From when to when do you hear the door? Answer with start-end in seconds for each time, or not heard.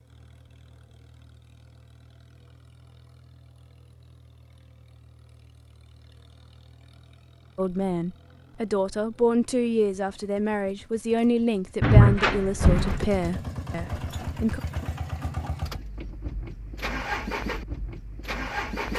11.8-13.1.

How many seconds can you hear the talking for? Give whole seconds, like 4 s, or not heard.
7 s.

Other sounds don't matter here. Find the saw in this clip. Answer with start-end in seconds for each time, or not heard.
not heard.